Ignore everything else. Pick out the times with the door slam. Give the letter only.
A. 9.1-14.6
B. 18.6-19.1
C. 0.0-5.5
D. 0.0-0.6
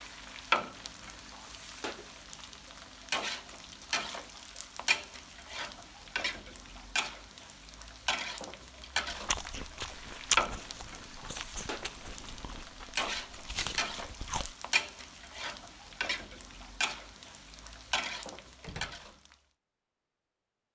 B.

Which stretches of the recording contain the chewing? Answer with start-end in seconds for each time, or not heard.
9.1-14.6.